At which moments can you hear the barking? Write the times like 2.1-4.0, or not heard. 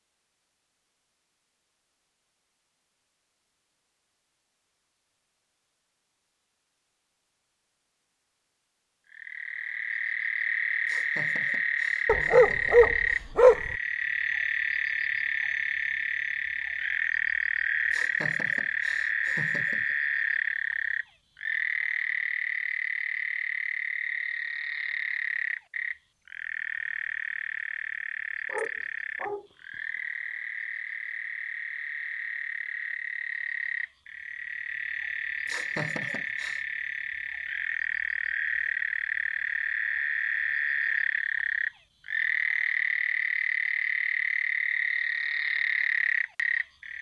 12.1-13.8, 28.4-29.5.